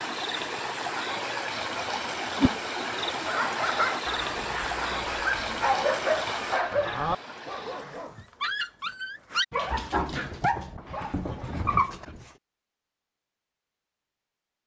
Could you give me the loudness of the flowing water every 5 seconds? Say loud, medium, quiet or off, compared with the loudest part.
loud, loud, off.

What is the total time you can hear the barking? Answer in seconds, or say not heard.
9 s.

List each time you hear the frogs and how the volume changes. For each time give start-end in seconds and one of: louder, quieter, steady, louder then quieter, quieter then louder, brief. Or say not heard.
not heard.